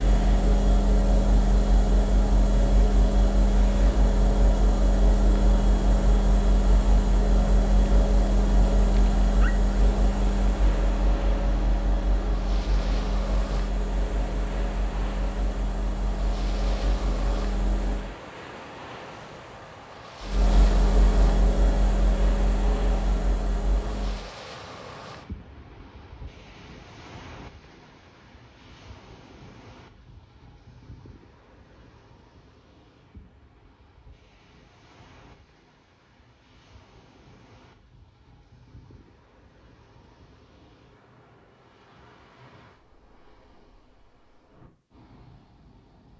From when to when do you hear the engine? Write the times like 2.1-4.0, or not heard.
0.0-18.1, 20.2-24.3.